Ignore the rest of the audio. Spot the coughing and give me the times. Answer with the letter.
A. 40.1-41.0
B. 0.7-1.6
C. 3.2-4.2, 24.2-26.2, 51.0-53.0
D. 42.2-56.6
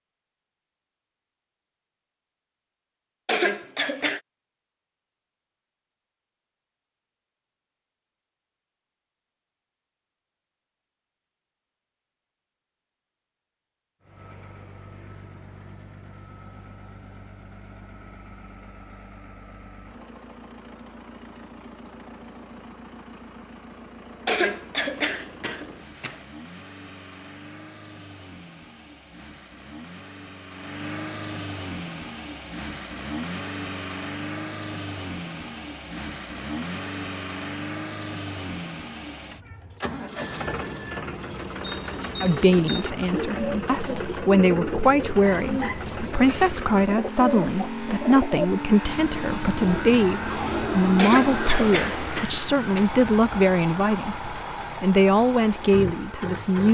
C.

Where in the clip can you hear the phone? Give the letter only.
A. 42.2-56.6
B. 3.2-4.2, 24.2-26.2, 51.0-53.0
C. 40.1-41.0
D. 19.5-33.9
C.